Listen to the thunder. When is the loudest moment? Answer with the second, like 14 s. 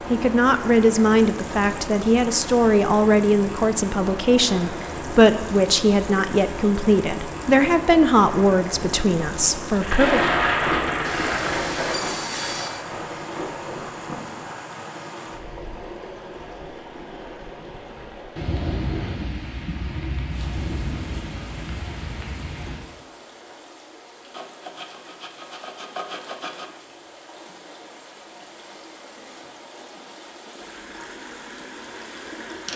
10 s.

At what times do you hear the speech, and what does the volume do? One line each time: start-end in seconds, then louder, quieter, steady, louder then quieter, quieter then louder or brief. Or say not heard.
0.1-10.2 steady.